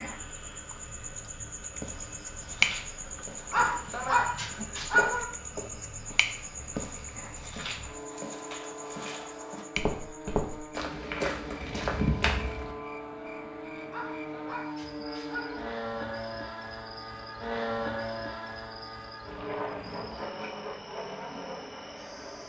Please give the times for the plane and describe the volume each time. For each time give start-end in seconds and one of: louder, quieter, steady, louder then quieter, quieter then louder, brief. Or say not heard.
0.0-22.4 louder.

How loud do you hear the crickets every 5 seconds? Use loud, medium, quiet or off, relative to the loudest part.
loud, medium, quiet, quiet, quiet.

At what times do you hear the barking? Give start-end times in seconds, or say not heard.
3.5-5.2, 13.9-15.7.